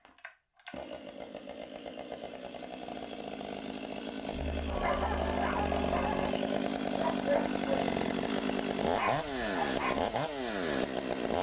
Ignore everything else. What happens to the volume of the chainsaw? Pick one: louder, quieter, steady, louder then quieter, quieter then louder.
louder.